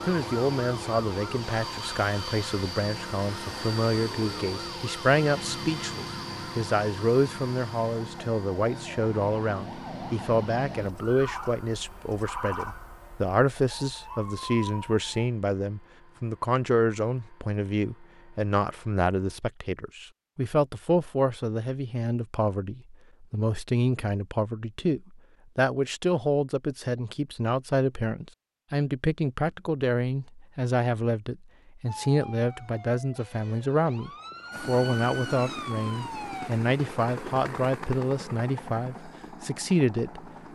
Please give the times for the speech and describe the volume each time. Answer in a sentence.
You can hear the speech from 0.1 to 40.3 s, at a steady volume.